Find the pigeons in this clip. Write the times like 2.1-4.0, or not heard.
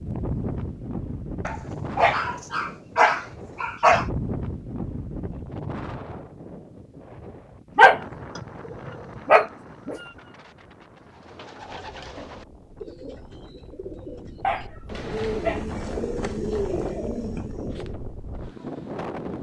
11.0-17.9.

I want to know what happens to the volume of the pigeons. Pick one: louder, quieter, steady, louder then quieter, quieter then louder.
louder.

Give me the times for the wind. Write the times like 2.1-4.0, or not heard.
0.0-19.3.